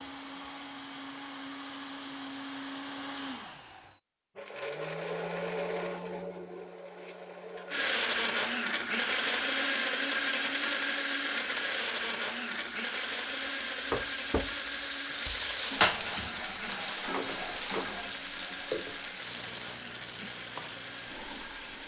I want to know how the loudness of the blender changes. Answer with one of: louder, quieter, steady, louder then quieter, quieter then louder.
louder then quieter.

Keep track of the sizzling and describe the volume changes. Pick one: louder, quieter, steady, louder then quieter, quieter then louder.
louder then quieter.